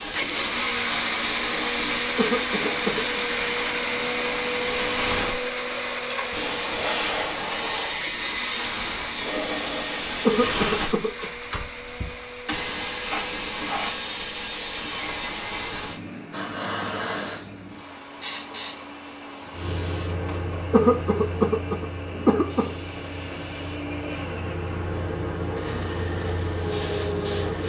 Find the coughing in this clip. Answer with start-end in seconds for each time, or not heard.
2.1-3.2, 10.2-11.3, 20.7-22.7.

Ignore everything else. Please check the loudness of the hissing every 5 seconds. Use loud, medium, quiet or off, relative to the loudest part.
loud, loud, loud, loud, medium, loud.